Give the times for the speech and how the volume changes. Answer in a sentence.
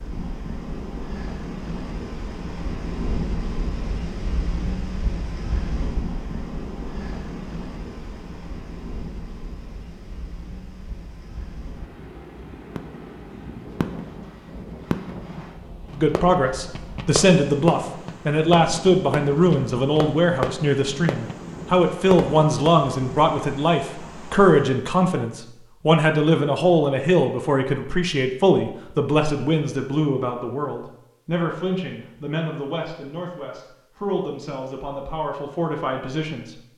You can hear the speech from 15.9 to 36.6 s, getting quieter.